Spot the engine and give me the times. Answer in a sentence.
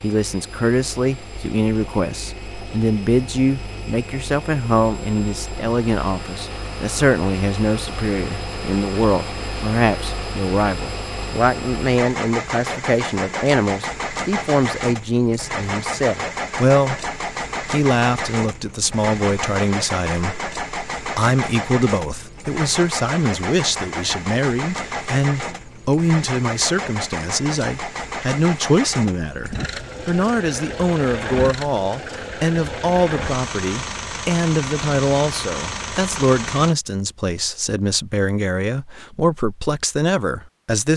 You can hear the engine from 0.0 to 36.8 s.